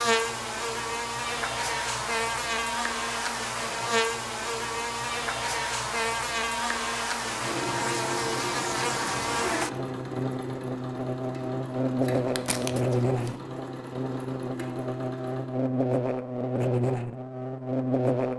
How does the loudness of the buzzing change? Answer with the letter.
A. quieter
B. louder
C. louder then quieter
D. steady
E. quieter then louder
D.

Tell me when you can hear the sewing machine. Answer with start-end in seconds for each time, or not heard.
7.2-15.6.